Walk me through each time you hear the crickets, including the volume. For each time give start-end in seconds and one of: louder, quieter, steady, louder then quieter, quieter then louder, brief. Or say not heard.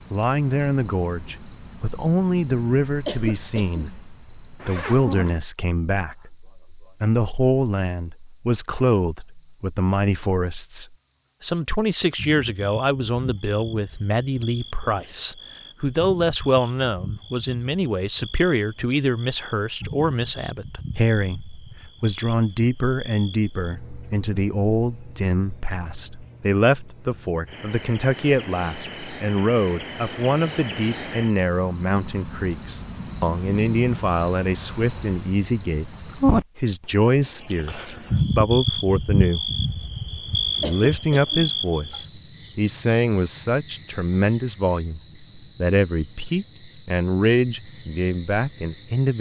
0.0-49.1 louder.